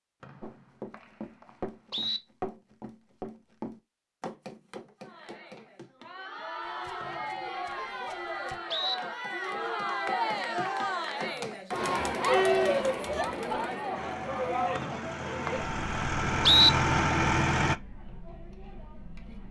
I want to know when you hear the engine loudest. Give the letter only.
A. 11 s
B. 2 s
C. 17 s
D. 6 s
C.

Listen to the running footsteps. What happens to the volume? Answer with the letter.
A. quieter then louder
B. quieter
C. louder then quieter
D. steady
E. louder
A.